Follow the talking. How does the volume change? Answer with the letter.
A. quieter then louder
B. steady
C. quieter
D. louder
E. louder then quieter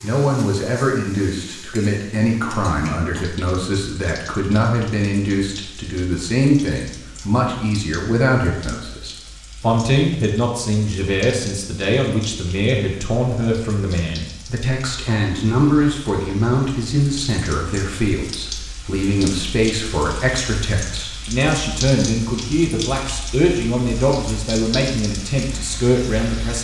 B.